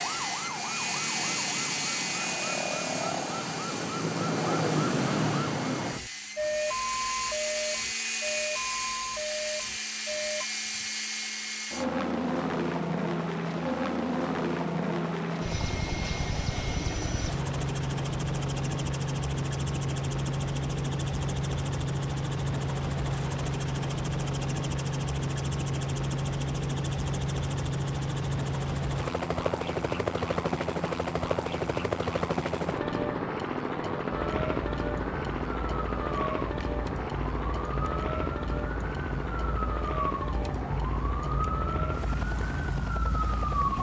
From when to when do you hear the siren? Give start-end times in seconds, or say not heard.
0.0-10.4, 34.1-43.7.